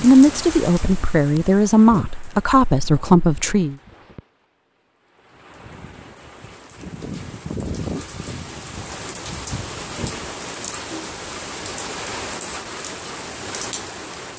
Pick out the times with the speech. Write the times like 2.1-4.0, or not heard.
0.0-3.8.